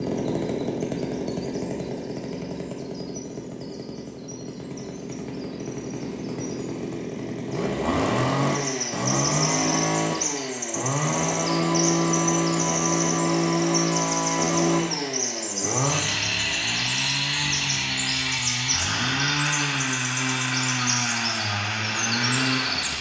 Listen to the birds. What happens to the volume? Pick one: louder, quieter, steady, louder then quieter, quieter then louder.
louder.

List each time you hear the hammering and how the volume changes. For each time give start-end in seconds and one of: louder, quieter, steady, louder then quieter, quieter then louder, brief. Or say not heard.
not heard.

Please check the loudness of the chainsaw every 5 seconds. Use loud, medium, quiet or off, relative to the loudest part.
medium, loud, loud, loud, loud.